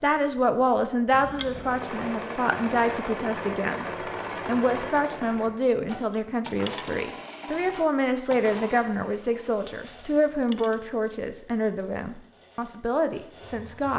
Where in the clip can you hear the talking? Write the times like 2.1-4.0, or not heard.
0.0-13.9.